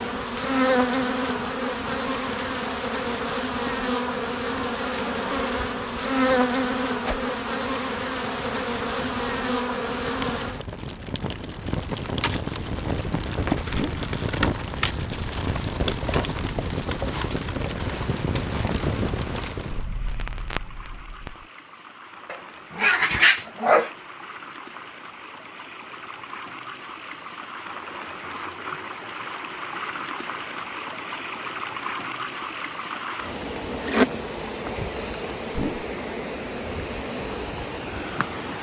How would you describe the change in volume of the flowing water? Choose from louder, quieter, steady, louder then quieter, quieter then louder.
louder.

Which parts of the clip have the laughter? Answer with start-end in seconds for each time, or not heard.
not heard.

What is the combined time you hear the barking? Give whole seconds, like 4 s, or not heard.
2 s.